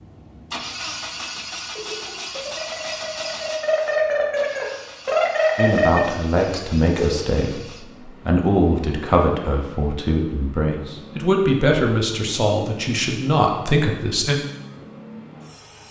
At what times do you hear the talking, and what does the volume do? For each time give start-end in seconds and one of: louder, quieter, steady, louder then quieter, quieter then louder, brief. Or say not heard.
5.5-14.3 steady.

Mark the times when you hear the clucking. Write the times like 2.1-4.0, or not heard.
1.8-7.2.